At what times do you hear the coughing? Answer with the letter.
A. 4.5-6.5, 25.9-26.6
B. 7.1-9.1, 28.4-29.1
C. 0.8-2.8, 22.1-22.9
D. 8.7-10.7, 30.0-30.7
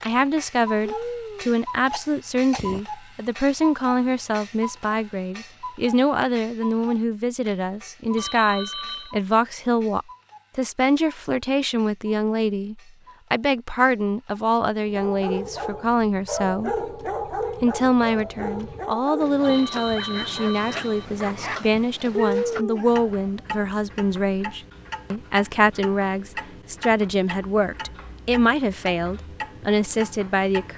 C.